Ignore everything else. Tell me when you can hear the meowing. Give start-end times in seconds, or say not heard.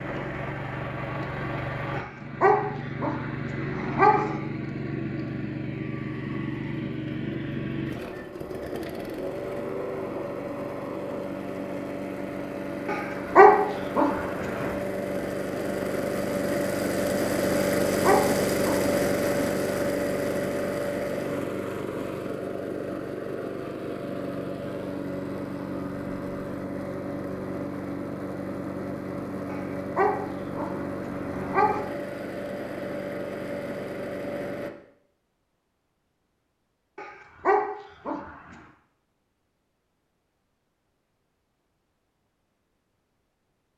not heard.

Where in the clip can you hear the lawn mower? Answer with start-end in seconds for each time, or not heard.
0.0-34.7.